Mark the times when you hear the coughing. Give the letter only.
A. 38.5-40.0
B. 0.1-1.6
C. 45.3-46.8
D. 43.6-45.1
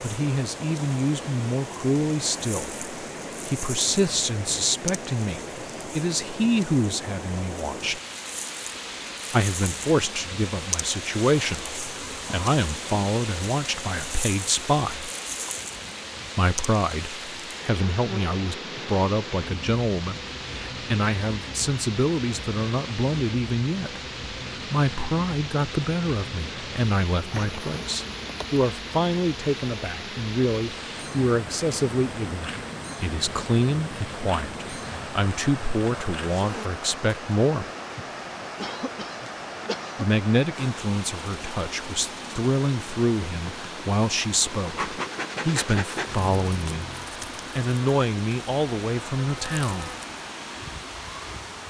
A.